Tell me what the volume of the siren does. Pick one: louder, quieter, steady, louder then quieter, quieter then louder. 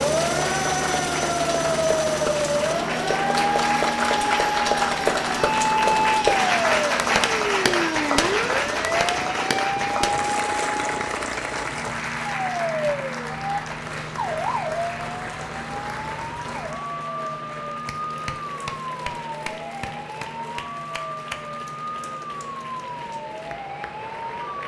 quieter.